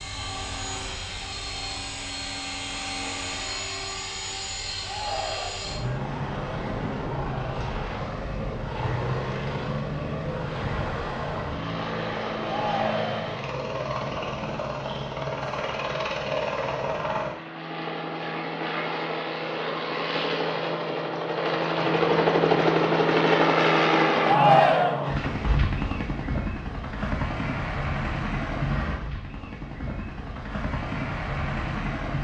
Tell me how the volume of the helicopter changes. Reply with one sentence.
The volume of the helicopter goes up, then down.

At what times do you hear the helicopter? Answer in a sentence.
The helicopter can be heard from 0.0 to 32.1 s.